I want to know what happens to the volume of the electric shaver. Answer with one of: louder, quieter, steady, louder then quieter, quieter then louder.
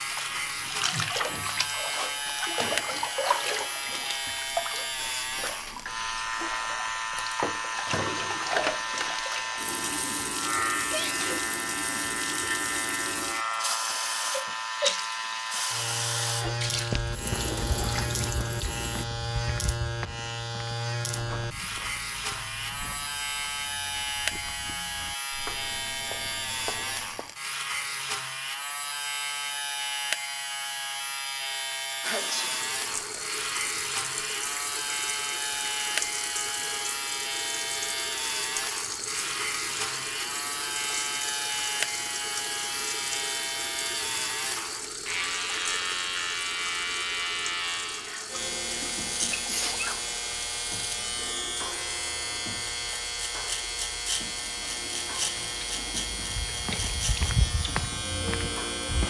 steady.